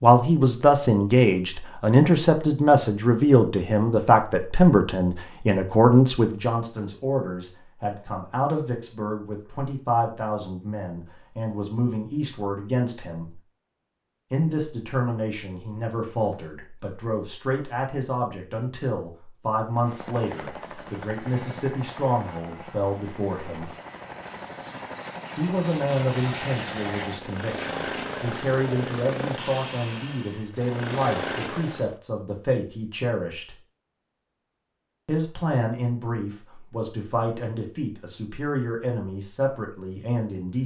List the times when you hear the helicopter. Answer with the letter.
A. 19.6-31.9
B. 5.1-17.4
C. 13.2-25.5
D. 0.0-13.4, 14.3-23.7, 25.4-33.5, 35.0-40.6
A.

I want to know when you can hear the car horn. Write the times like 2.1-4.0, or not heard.
not heard.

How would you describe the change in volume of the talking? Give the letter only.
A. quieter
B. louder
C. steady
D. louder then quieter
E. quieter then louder
A.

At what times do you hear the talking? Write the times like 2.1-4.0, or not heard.
0.0-13.4, 14.3-23.7, 25.4-33.5, 35.0-40.6.